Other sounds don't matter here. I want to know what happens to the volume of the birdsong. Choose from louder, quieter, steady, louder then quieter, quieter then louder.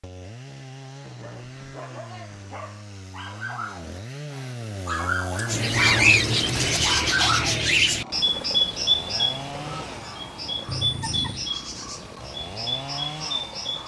quieter.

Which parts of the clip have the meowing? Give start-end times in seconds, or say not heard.
10.7-11.5.